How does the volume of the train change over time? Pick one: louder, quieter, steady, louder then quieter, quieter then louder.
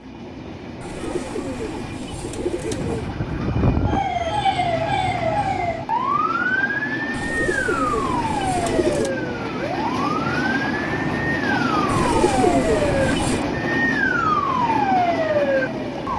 louder.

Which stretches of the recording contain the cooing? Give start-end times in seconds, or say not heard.
0.8-3.1, 7.1-9.2, 11.8-13.4.